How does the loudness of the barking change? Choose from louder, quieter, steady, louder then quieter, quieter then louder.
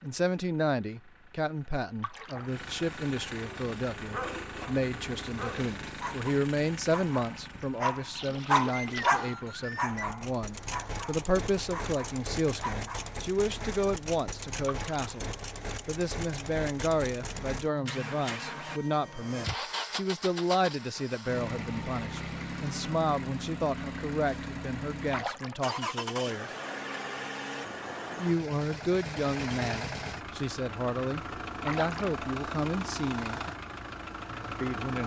louder then quieter.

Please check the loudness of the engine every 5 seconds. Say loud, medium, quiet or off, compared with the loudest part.
medium, medium, loud, loud, loud, loud, loud.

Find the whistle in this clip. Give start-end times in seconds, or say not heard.
8.7-10.1.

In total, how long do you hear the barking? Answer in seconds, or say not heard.
10 s.